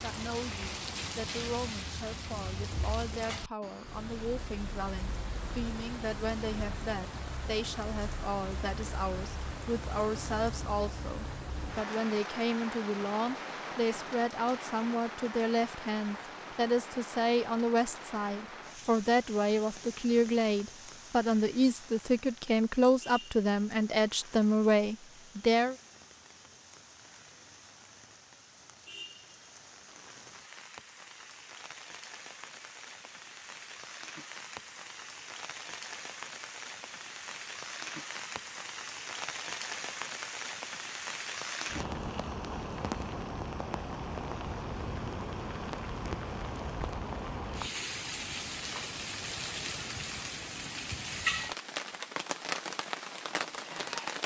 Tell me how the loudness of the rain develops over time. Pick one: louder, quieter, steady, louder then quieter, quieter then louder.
quieter then louder.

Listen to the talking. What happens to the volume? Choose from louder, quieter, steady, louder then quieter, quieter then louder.
louder.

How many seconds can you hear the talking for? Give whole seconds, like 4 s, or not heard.
26 s.